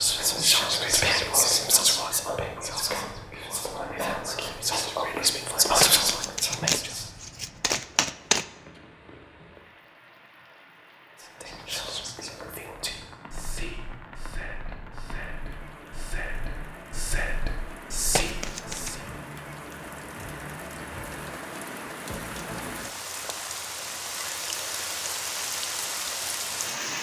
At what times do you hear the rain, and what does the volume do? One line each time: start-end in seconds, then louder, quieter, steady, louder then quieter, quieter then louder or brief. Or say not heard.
0.0-26.9 louder.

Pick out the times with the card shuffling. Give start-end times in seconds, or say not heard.
5.8-8.4, 18.1-18.9.